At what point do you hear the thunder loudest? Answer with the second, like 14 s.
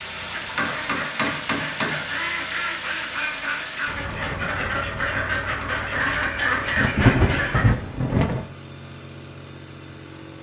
7 s.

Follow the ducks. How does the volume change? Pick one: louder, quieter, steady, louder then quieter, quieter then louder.
louder.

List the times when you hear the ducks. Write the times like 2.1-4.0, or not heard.
0.2-7.7.